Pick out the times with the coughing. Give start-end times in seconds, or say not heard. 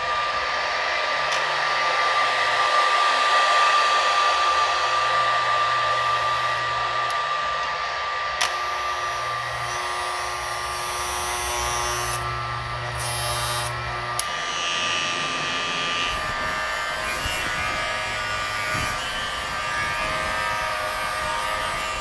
not heard.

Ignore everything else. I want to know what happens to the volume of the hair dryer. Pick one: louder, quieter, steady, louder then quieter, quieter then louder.
quieter.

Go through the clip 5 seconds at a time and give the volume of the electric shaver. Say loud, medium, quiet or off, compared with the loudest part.
quiet, medium, loud, loud, loud.